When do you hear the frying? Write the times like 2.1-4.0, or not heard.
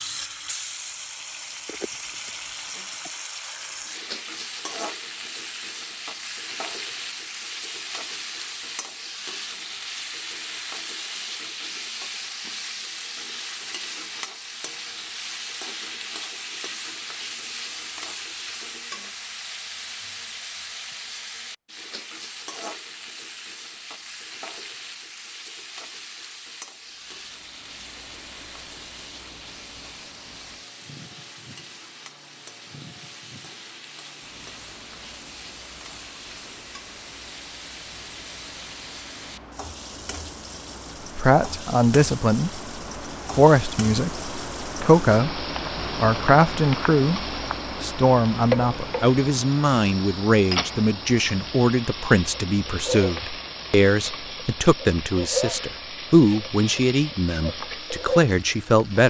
0.0-59.0.